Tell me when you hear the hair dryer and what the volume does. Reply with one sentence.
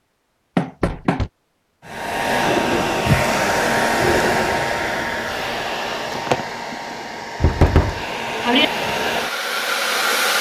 The hair dryer can be heard from 1.9 to 10.3 s, getting quieter then louder.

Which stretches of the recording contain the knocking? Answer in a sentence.
The knocking can be heard from 0.6 to 1.3 s and from 7.4 to 8.7 s.